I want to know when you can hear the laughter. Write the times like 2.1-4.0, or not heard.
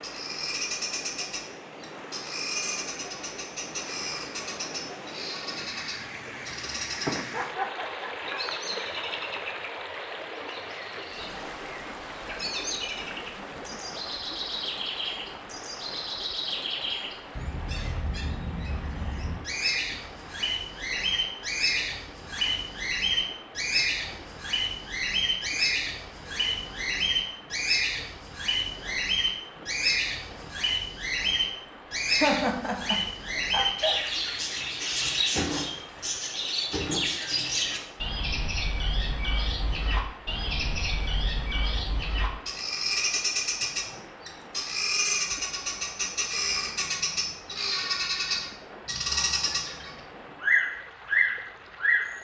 6.9-8.9, 32.0-34.2.